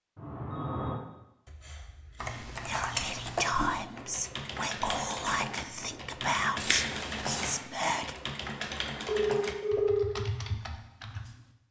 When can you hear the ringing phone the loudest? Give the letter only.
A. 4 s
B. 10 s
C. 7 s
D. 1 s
B.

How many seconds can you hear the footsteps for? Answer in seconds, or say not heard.
not heard.